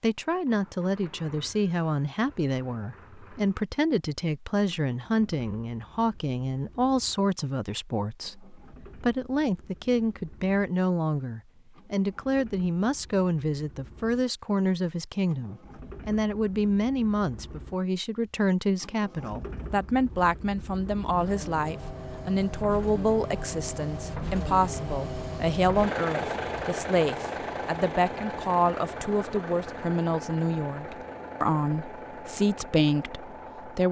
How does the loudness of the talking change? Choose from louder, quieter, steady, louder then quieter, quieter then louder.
steady.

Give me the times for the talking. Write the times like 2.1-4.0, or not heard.
0.0-33.8.